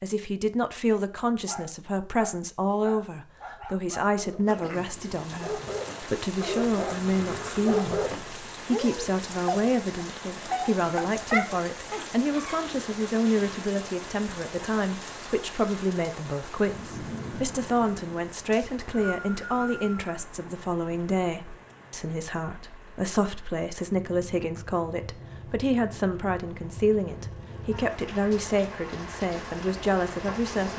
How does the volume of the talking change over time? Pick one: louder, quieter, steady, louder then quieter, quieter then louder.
steady.